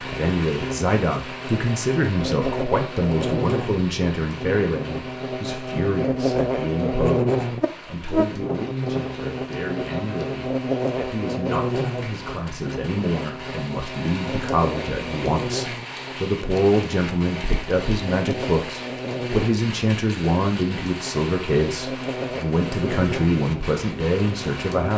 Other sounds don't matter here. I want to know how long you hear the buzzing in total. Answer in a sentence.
You can hear the buzzing for 25 seconds altogether.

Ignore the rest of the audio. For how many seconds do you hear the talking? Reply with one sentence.
The talking can be heard for 25 seconds in total.